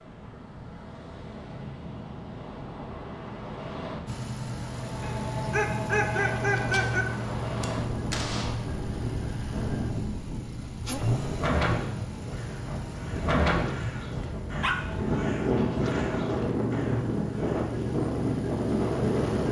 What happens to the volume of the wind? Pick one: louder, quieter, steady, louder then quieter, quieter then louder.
louder.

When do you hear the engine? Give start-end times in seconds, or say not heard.
4.0-19.4.